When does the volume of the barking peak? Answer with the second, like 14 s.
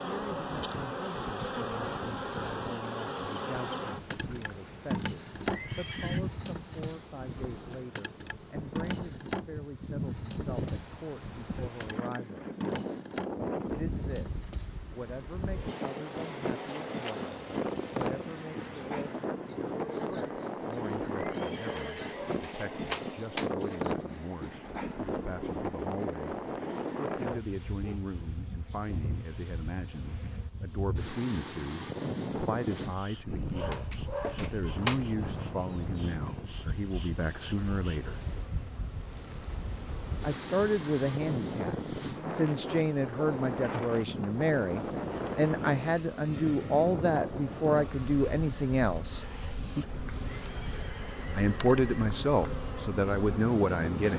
35 s.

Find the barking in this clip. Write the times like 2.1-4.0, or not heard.
21.6-23.5, 33.5-35.0.